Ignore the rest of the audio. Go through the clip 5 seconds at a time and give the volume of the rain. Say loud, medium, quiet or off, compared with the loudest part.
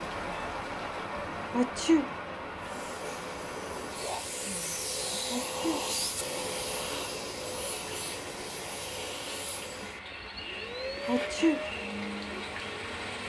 loud, medium, loud.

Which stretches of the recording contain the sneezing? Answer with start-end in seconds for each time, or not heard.
1.5-2.0, 5.3-5.8, 11.1-11.6.